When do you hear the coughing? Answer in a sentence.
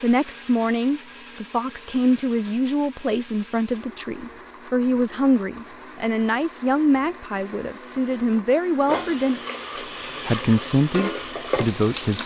The coughing can't be heard in this clip.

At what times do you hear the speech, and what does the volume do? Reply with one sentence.
The speech can be heard from 0.0 to 9.4 s, at a steady volume; and briefly from 10.2 to 12.2 s.